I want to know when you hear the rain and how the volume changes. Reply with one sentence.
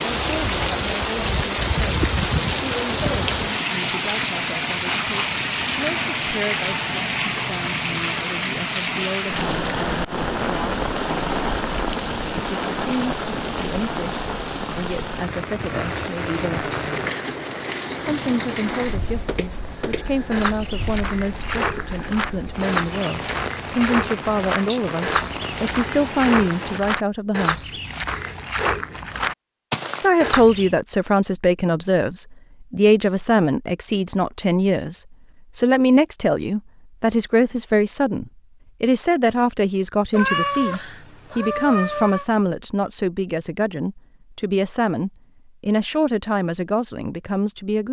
The rain can be heard from 0.0 to 26.8 s, getting quieter.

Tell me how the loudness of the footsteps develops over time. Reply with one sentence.
The volume of the footsteps stays about the same.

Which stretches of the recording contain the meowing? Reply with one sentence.
You can hear the meowing from 40.1 to 42.2 s.